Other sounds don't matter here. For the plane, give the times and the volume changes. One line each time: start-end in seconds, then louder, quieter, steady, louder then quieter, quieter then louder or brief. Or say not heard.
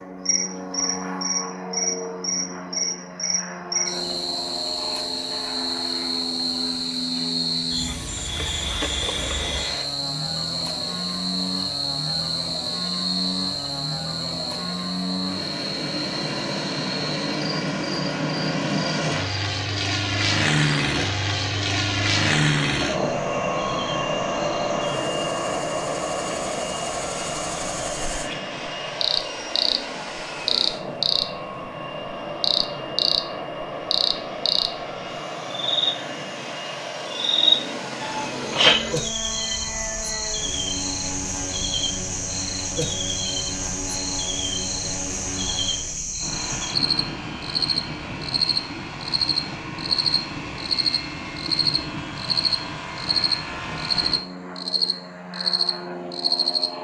0.0-56.8 louder then quieter.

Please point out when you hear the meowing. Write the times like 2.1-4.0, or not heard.
38.0-38.8.